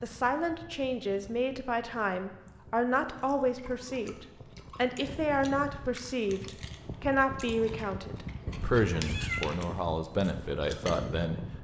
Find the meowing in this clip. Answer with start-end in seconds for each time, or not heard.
8.4-9.5.